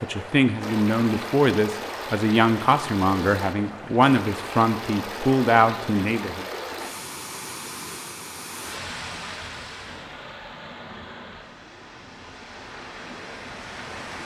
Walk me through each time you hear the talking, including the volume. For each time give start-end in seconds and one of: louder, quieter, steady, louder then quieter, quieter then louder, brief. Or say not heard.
0.0-6.5 steady.